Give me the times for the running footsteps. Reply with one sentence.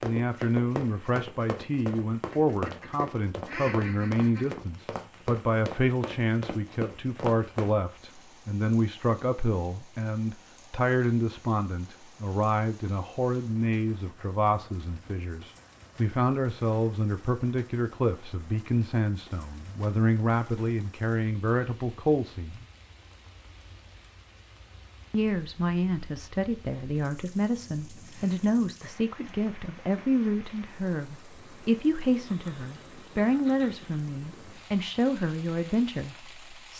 You can hear the running footsteps from 0.0 to 7.8 s.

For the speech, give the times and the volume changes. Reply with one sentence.
The speech can be heard from 0.0 to 22.6 s, at a steady volume; and from 25.1 to 36.7 s, at a steady volume.